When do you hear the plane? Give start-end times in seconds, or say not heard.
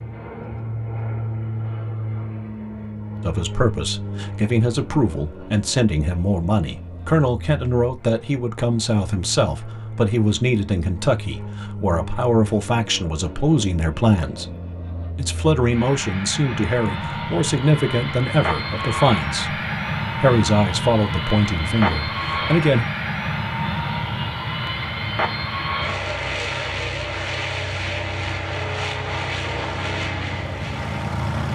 0.0-31.5.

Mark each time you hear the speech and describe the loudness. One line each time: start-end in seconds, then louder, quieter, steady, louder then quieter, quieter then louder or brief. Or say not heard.
3.2-14.6 steady
15.2-19.6 steady
20.2-22.9 brief.